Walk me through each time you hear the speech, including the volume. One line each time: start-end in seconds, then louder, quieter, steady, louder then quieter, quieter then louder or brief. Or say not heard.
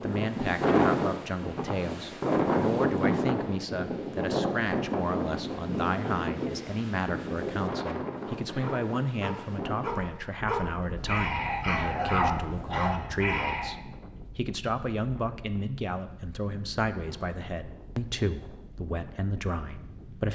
0.0-20.3 steady.